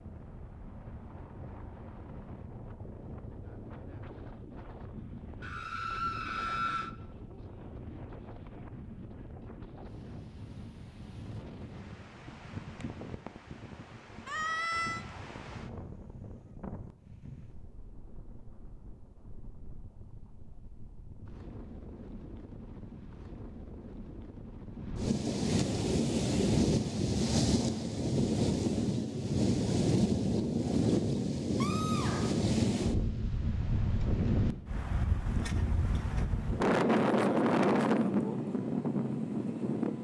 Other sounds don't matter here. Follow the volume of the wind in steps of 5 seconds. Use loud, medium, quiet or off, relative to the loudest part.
quiet, quiet, quiet, quiet, quiet, loud, loud, loud.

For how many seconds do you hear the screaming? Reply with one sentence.
You can hear the screaming for 3 seconds altogether.